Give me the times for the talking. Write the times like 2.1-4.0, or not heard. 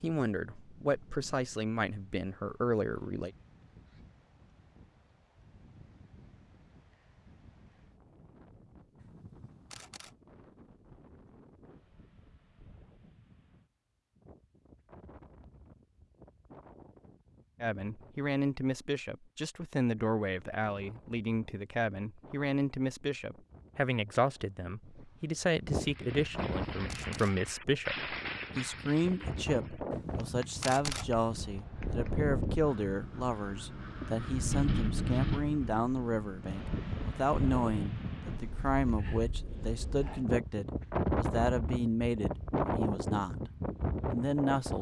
0.0-3.3, 17.6-43.5, 44.1-44.7.